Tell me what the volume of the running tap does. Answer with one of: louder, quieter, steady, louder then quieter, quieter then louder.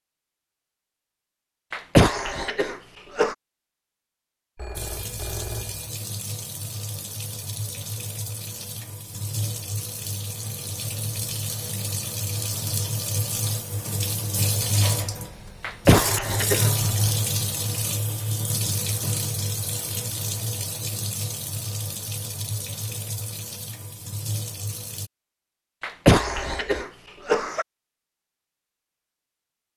louder then quieter.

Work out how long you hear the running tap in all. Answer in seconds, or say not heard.
20 s.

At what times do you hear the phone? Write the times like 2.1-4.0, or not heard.
4.5-5.9, 26.1-26.6.